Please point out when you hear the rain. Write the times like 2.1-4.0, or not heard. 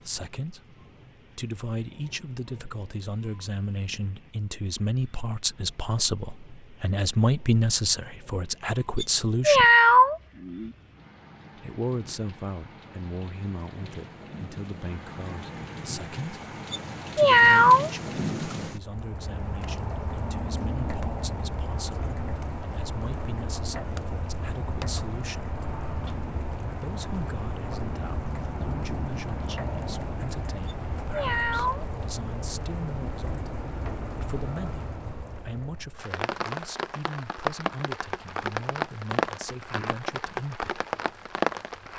0.0-41.9.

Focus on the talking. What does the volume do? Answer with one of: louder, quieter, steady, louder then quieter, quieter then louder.
quieter.